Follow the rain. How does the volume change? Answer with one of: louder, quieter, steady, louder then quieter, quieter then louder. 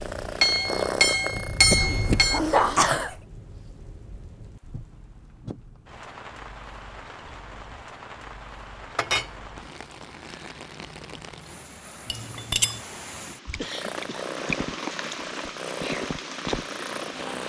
quieter then louder.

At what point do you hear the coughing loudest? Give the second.
3 s.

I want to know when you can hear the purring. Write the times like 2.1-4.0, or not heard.
0.0-2.7, 13.6-17.4.